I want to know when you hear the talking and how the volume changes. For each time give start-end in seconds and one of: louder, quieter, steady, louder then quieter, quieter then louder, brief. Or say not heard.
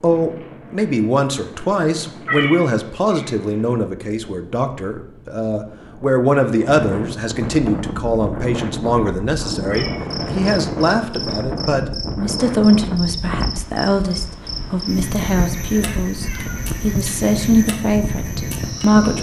0.0-19.1 steady.